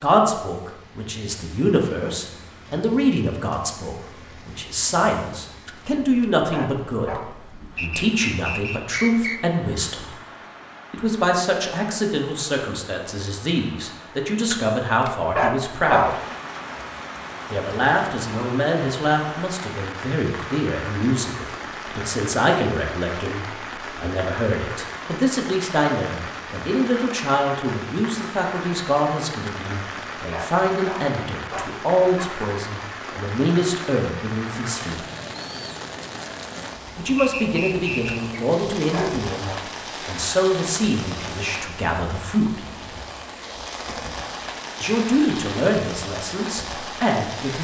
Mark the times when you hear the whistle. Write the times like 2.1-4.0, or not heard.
7.8-9.4, 37.1-38.4.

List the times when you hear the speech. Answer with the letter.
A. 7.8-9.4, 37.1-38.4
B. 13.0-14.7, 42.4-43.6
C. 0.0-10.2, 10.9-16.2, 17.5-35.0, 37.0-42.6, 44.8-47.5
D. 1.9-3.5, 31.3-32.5
C.